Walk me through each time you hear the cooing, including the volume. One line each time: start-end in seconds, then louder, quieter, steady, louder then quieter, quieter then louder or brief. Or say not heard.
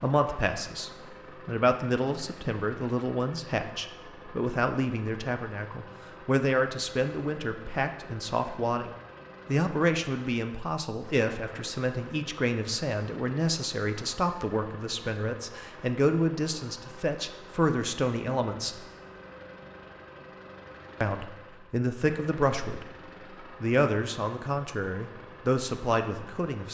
not heard.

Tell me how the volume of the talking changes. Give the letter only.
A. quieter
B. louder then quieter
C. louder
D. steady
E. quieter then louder
D.